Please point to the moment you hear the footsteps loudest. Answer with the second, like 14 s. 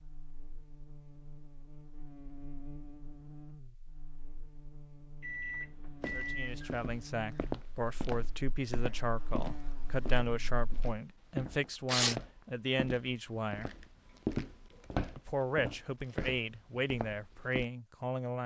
14 s.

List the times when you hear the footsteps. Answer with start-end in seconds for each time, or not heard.
6.0-17.6.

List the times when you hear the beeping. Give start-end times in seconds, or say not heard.
5.2-6.6.